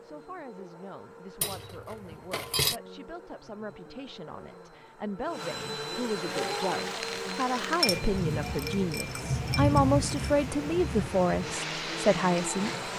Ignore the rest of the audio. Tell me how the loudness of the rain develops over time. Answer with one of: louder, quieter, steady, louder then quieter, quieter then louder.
louder then quieter.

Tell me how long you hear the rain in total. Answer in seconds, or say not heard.
7 s.